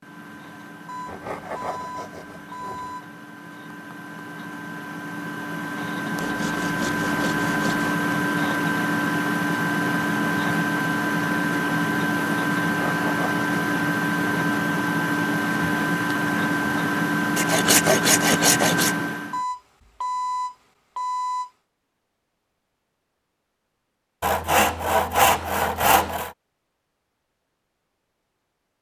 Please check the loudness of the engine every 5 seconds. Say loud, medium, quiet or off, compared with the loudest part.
quiet, loud, loud, loud, off, off.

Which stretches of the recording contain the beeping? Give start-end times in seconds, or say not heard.
0.8-3.0, 19.3-21.5.